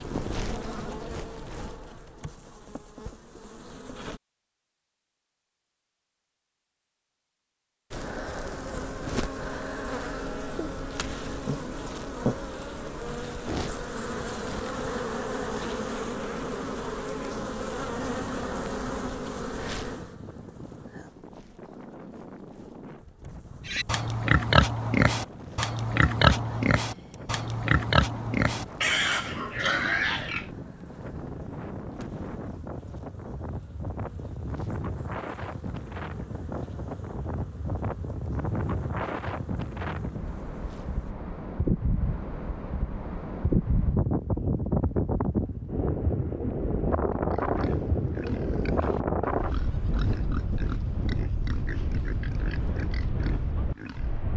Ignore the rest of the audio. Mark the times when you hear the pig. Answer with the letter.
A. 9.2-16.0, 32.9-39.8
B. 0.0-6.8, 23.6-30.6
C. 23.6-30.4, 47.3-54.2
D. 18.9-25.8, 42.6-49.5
C.